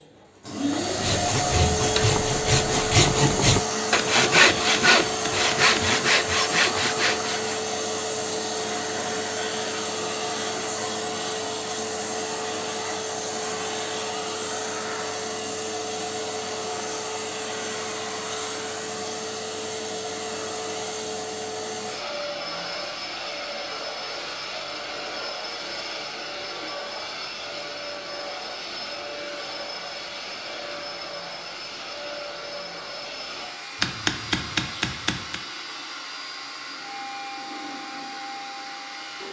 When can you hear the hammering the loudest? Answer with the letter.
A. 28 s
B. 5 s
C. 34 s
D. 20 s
C.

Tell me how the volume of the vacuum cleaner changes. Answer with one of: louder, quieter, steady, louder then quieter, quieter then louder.
quieter.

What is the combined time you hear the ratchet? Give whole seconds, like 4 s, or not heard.
not heard.